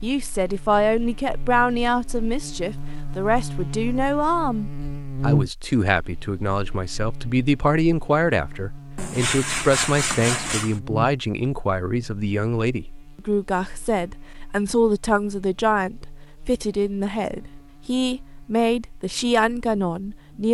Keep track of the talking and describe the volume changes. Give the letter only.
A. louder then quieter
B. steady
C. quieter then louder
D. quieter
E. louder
B.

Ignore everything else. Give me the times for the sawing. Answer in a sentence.
The sawing can be heard from 8.9 to 10.8 s.